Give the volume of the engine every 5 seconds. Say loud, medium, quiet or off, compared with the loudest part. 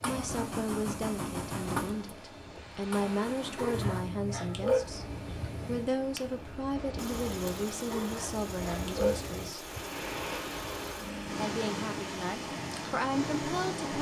loud, medium, medium.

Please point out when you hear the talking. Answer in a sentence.
You can hear the talking from 0.0 to 9.7 s and from 11.4 to 13.9 s.